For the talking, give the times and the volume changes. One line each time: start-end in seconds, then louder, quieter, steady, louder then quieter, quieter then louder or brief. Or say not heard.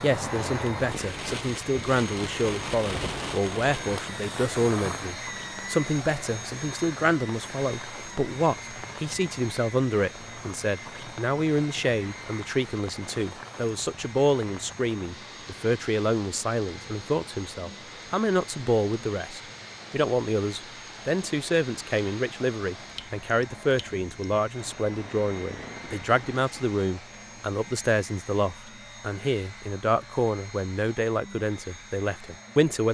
0.0-32.8 steady.